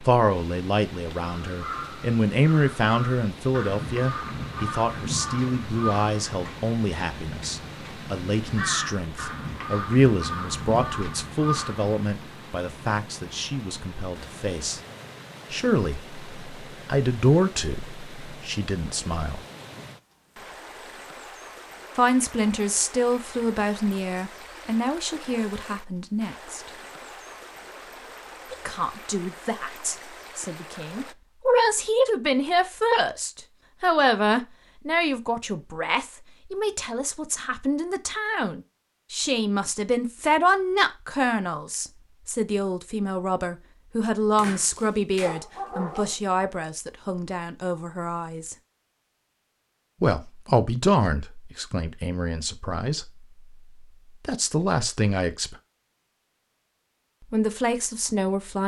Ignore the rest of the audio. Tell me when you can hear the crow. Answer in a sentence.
The crow can be heard from 1.2 to 12.2 s.